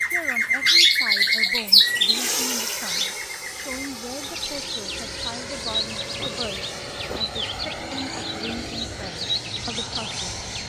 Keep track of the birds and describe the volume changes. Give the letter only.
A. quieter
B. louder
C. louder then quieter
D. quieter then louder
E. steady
A.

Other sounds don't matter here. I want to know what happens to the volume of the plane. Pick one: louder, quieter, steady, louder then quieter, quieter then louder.
steady.